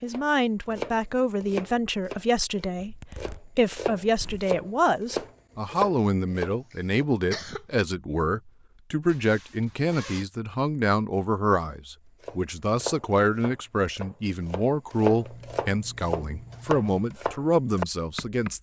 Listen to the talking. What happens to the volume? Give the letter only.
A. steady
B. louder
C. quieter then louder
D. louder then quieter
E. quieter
A.